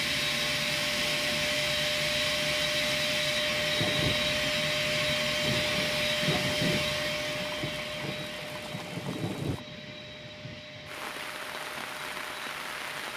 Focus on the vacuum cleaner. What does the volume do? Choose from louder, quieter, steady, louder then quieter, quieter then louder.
quieter.